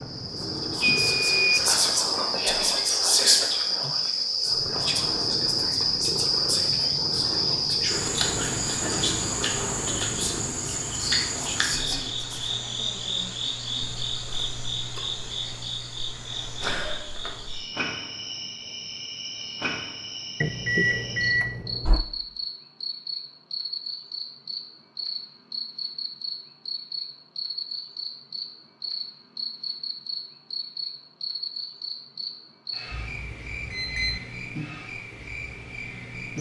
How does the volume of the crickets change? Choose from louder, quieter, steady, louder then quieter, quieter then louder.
quieter.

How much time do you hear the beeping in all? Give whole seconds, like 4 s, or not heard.
4 s.